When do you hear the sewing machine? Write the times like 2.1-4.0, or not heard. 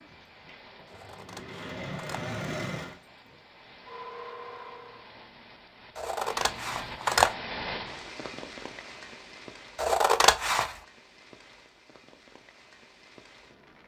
0.0-5.2.